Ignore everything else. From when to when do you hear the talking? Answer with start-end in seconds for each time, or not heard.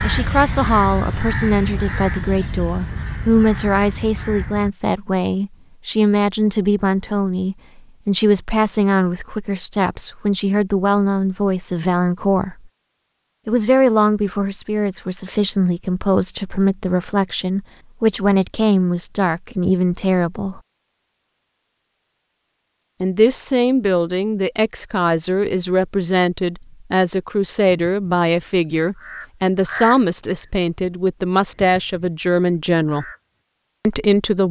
0.0-12.7, 13.4-20.6, 23.0-33.0, 33.9-34.4.